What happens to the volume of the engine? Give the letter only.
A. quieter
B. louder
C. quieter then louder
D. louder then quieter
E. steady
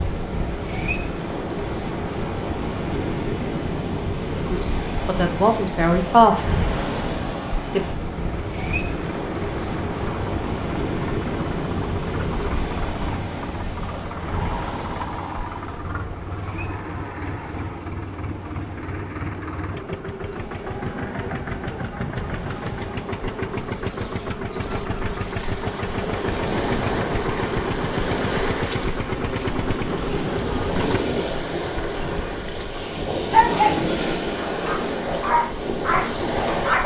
B.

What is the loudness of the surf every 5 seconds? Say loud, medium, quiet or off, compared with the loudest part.
loud, loud, loud, quiet, quiet, loud, loud, loud.